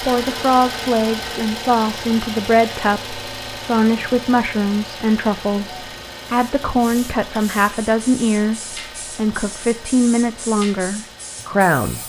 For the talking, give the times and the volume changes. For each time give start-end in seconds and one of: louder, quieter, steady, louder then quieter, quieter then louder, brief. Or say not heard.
0.0-12.0 steady.